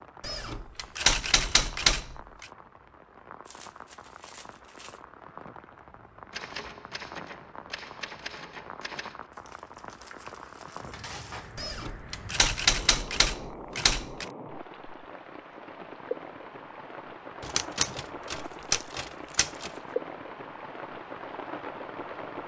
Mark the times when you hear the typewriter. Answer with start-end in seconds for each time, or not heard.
0.2-2.5, 6.3-9.2, 11.6-14.2, 17.4-19.7.